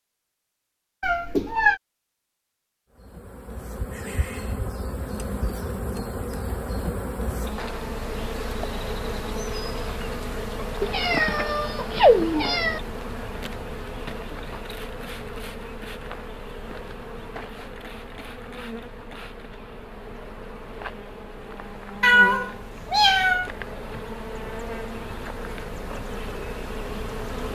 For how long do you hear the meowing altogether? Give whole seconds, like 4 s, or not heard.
4 s.